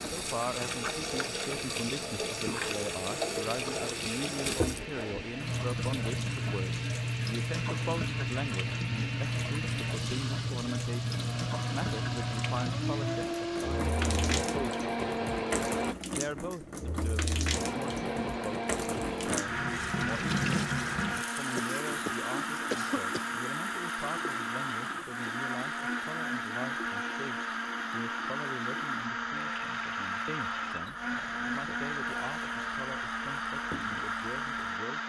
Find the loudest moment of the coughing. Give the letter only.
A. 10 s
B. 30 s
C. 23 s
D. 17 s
C.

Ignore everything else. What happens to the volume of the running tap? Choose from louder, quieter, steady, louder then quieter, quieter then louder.
quieter.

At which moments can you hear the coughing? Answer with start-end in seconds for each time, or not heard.
21.6-23.3.